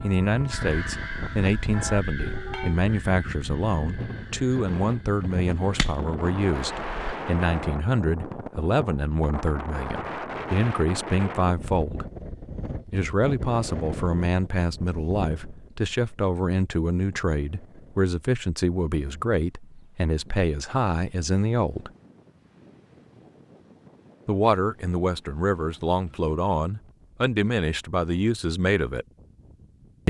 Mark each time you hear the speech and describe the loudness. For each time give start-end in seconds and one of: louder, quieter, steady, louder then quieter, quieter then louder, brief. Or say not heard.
0.0-12.1 steady
12.9-21.9 steady
24.2-29.1 steady.